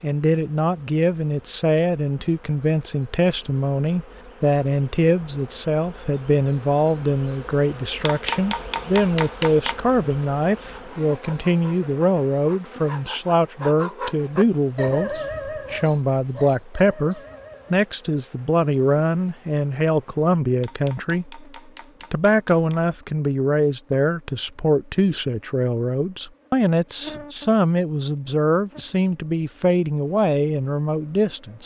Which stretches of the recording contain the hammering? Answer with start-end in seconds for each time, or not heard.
8.1-9.8, 20.6-22.8.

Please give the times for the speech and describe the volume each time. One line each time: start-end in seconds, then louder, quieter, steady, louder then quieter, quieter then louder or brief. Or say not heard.
0.0-21.4 steady
22.1-31.6 steady.